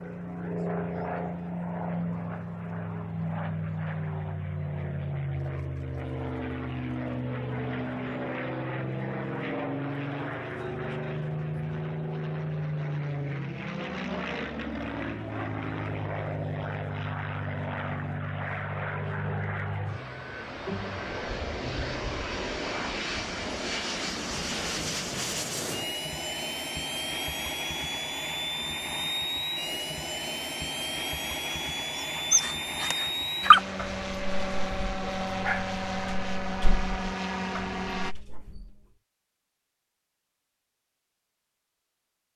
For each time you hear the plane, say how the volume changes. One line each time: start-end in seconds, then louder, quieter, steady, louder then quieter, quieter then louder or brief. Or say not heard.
0.0-38.1 steady.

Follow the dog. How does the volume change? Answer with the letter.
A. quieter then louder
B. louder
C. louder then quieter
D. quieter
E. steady
D.